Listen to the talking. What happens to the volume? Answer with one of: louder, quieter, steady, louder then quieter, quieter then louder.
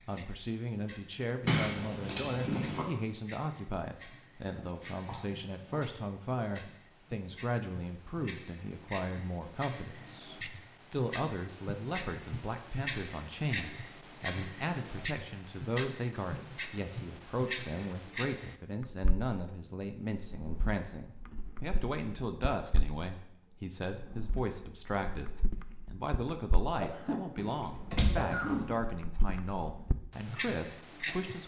steady.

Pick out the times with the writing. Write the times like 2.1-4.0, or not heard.
not heard.